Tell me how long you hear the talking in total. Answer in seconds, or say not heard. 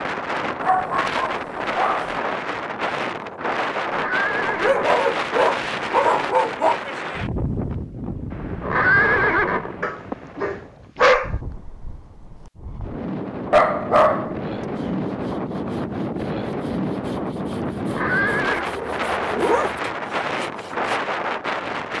not heard.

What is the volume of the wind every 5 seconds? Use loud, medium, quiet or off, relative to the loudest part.
loud, loud, medium, loud, loud.